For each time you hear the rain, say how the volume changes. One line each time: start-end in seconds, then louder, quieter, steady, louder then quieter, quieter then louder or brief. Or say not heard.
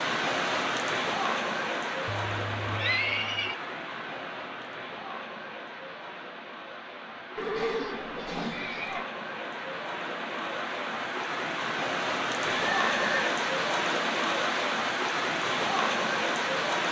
0.0-16.8 quieter then louder.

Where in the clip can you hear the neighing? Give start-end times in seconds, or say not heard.
2.0-3.5, 7.3-9.1, 12.7-13.3.